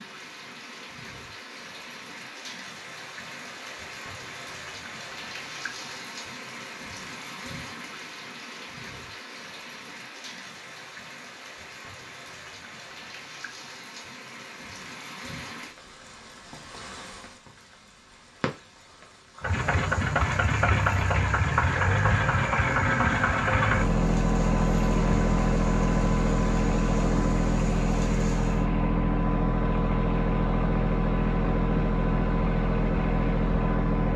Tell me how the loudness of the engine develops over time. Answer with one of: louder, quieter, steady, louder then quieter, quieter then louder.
steady.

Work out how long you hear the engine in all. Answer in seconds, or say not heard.
15 s.